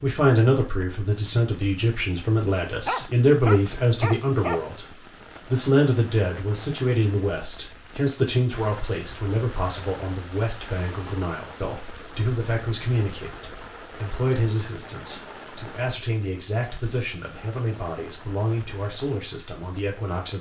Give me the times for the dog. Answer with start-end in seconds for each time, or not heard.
2.9-4.7.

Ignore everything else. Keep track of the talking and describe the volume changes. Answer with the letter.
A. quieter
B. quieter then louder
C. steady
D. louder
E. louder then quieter
A.